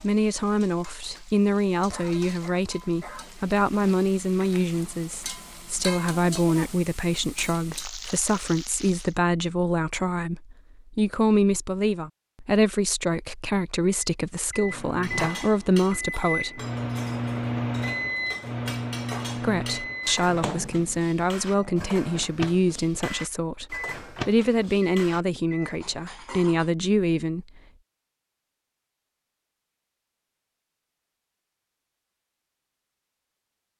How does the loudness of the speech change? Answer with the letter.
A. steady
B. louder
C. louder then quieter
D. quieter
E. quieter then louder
A.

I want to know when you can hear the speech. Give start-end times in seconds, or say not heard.
0.0-16.6, 19.4-27.4.